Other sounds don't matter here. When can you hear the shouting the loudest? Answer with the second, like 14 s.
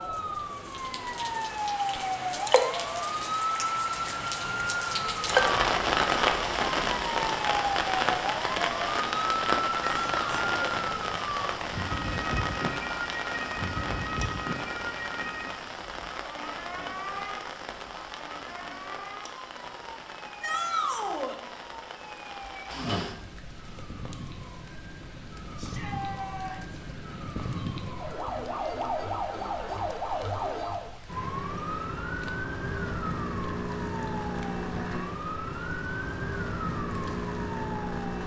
21 s.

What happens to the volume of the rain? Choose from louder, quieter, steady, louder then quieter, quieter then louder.
quieter.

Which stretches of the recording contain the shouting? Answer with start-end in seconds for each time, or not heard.
9.8-10.6, 20.4-21.4, 25.6-26.8.